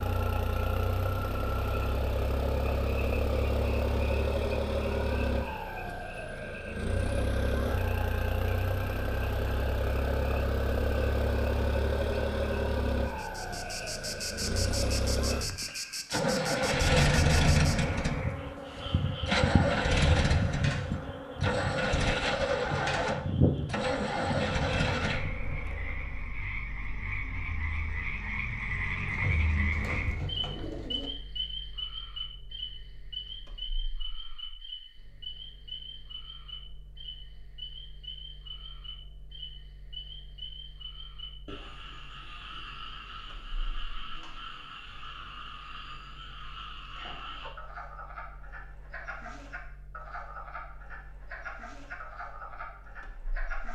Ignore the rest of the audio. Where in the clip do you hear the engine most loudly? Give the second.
17 s.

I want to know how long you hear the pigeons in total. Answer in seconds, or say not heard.
2 s.